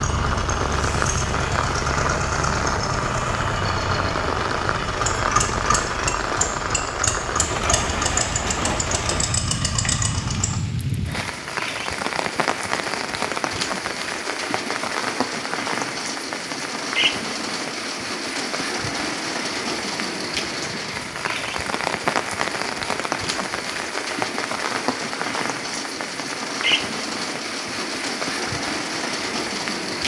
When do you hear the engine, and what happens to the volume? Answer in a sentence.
The engine can be heard from 0.0 to 10.6 s, at a steady volume.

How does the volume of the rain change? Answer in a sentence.
The loudness of the rain stays about the same.